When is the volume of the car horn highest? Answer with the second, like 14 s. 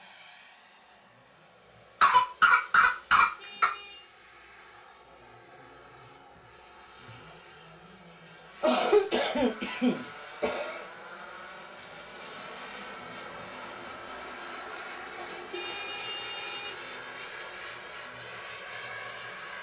16 s.